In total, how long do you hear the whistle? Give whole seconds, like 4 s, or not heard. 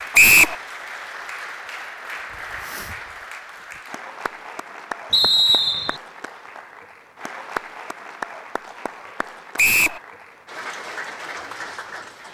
2 s.